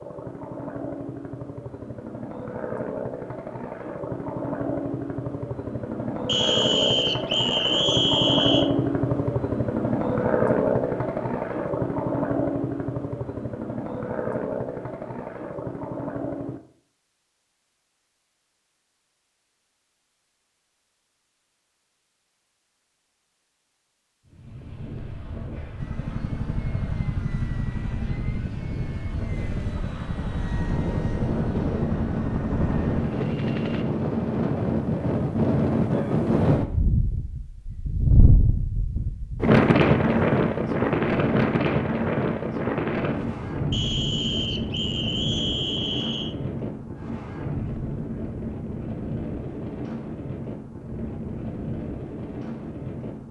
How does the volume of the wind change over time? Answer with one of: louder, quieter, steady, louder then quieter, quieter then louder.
louder then quieter.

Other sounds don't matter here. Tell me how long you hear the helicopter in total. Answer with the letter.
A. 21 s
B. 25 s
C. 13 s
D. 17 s
B.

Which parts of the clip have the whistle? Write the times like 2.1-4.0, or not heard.
6.2-8.7, 43.7-46.4.